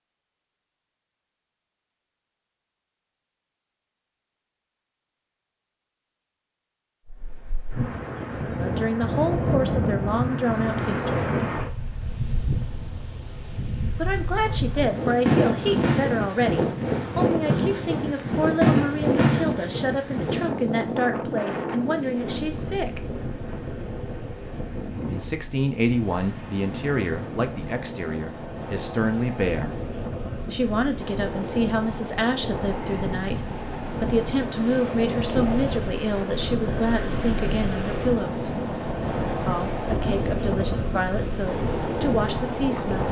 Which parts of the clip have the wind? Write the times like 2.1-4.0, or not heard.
7.0-43.0.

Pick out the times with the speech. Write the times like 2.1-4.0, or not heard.
8.5-11.3, 13.9-23.0, 25.1-29.8, 30.5-38.6, 39.5-43.0.